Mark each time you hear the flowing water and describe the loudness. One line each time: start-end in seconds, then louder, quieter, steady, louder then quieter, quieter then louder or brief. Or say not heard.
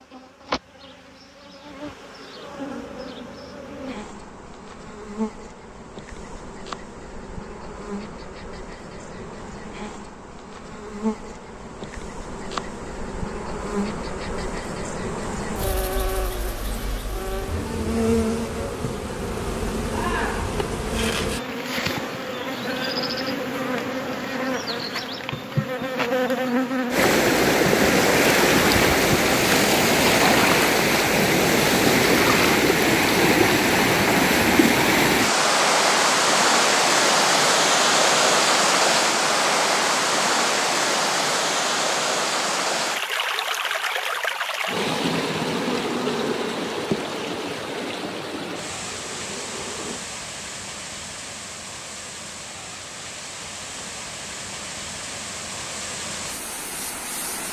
26.9-57.4 quieter.